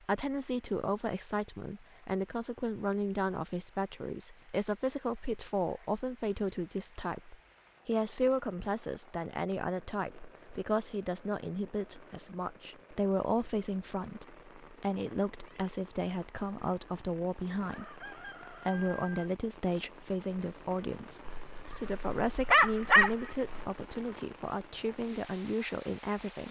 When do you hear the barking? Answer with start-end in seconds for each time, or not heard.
21.2-23.6.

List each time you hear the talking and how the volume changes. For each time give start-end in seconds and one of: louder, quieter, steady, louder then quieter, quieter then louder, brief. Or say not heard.
0.1-26.4 steady.